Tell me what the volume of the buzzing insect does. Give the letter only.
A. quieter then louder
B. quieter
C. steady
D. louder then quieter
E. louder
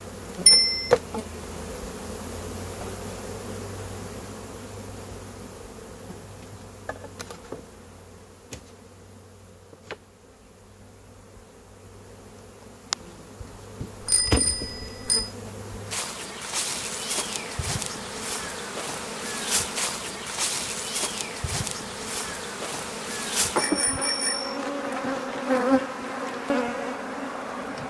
A.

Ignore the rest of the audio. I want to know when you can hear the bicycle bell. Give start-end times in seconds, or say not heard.
0.5-0.9, 13.8-15.3, 23.6-24.6.